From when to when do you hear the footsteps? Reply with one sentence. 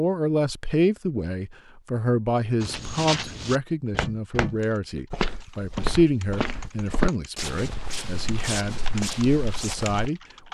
You can hear the footsteps from 2.6 to 10.1 s.